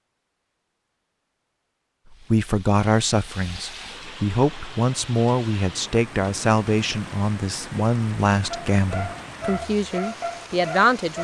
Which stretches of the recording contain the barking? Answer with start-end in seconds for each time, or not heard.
8.5-11.1.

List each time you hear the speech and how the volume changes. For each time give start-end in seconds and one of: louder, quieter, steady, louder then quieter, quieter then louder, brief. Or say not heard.
2.3-11.1 steady.